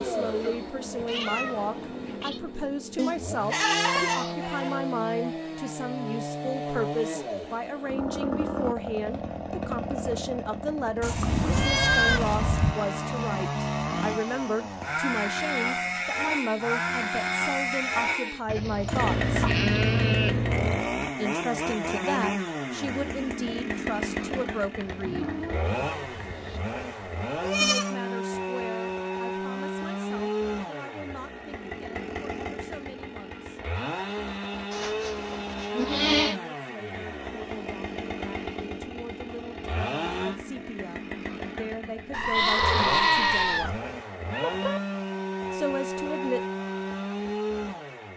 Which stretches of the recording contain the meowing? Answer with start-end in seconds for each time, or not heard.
0.4-2.4, 24.8-26.6, 44.3-44.8.